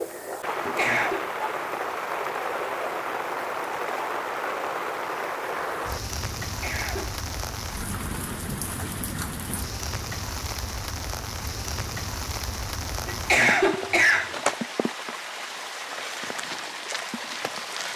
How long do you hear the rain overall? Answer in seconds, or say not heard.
18 s.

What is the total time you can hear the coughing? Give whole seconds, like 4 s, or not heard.
3 s.